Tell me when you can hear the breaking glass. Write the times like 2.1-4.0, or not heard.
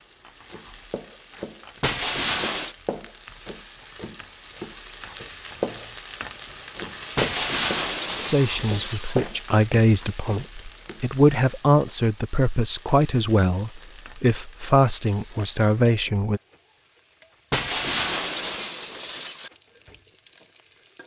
1.8-2.8, 7.2-9.2, 17.5-19.5.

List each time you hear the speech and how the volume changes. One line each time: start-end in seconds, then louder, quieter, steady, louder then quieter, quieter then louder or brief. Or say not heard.
8.2-16.4 steady.